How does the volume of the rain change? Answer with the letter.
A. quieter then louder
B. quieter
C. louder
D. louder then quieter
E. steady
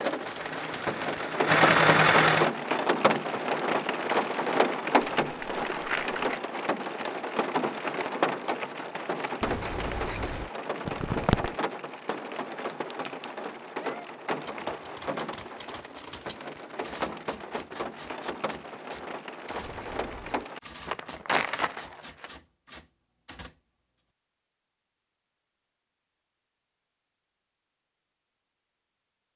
B.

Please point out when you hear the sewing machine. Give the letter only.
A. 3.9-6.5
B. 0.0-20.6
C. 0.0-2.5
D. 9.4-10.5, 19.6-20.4
C.